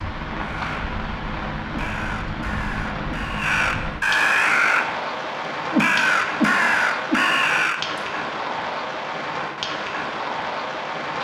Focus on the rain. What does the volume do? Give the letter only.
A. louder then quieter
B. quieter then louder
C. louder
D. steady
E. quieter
D.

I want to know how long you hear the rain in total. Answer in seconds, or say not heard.
11 s.